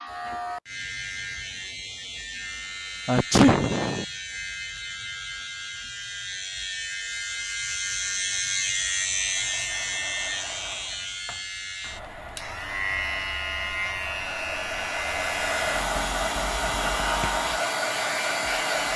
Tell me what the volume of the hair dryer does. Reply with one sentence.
The loudness of the hair dryer goes up.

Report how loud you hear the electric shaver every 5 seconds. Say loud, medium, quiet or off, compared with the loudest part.
medium, loud, loud, loud.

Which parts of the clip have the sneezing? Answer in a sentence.
The sneezing can be heard from 3.0 to 4.0 s.